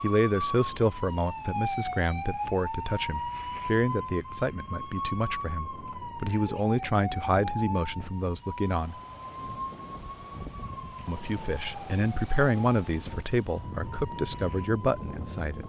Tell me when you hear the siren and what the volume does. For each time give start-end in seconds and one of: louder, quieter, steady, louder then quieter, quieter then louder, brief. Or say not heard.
0.0-15.6 quieter.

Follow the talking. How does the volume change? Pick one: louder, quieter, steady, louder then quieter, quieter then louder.
steady.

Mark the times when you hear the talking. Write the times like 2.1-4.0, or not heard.
0.0-8.9, 11.1-15.6.